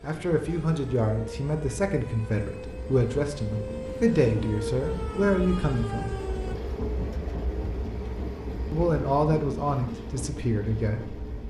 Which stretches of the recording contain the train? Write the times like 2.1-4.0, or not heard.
0.0-11.4.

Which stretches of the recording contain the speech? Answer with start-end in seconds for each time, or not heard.
0.0-6.2, 8.7-11.2.